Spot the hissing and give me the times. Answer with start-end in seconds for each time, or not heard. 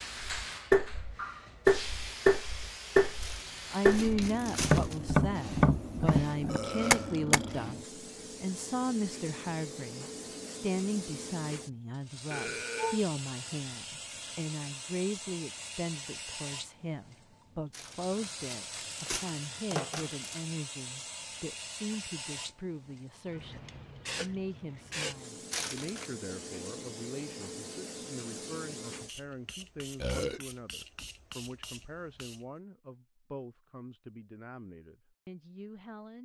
0.0-32.5.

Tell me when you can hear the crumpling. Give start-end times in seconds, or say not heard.
3.2-5.0, 17.7-20.4, 25.5-26.1.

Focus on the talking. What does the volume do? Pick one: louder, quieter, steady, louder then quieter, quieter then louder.
quieter.